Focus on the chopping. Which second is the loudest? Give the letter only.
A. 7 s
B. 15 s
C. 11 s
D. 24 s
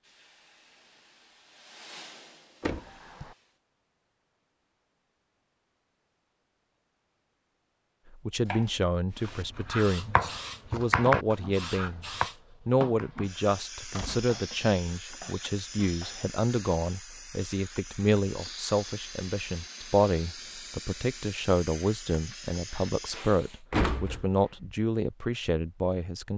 C.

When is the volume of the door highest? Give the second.
24 s.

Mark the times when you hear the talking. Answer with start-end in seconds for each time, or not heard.
8.1-12.1, 12.7-26.3.